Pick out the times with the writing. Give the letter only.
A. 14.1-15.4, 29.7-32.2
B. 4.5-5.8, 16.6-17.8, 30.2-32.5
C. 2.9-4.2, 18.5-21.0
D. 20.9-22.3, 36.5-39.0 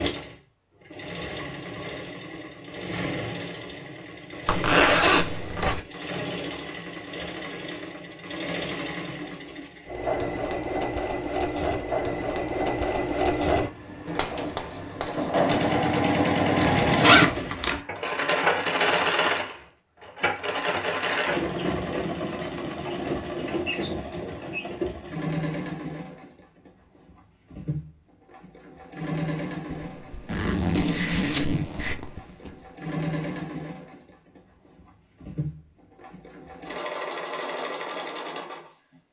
A.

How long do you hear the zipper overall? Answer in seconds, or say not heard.
5 s.